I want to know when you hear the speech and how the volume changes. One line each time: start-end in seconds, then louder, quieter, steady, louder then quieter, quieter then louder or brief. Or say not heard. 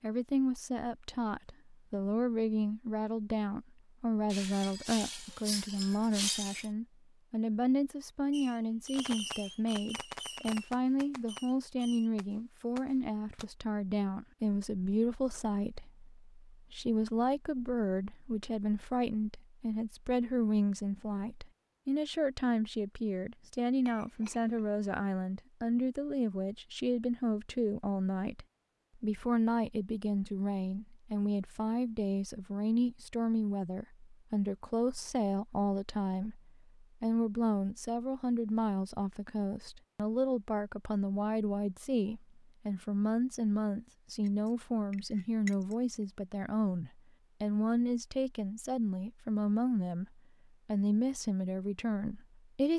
0.0-52.7 steady.